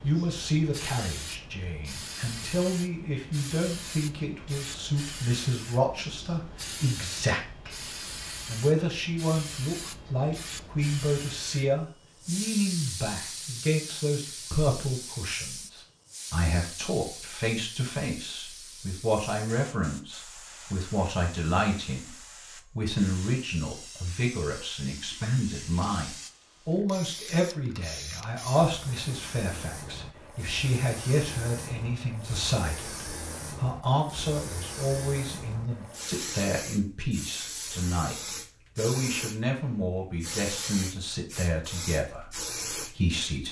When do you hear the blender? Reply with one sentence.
You can't hear the blender here.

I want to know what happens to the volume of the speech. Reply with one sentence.
The loudness of the speech stays about the same.